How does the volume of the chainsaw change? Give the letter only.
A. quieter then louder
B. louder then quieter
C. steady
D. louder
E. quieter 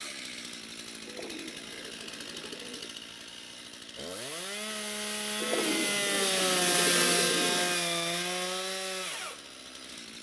B.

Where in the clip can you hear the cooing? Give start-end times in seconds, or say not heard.
1.1-3.0, 5.3-7.8.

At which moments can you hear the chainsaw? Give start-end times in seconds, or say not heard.
0.0-10.1.